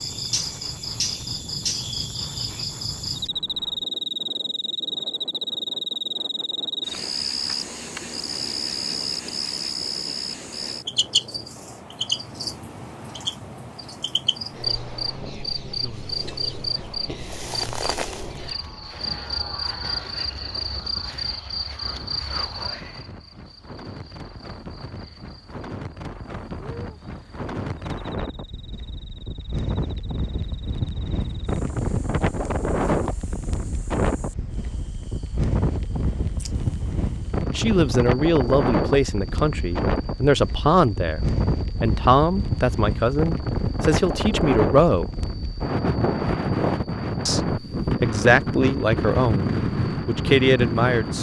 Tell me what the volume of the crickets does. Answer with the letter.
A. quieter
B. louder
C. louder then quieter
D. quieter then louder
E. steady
A.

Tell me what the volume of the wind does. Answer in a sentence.
The volume of the wind goes up.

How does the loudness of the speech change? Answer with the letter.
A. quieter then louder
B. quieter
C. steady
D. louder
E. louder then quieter
C.